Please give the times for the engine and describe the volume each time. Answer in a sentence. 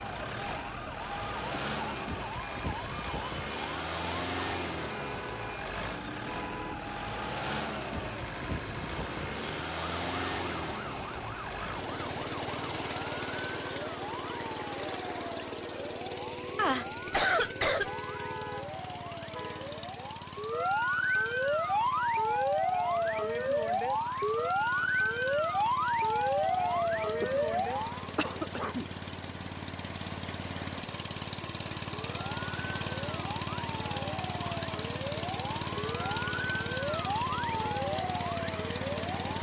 The engine can be heard from 0.0 to 39.3 s, getting quieter then louder.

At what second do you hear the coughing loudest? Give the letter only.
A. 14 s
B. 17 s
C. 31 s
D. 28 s
B.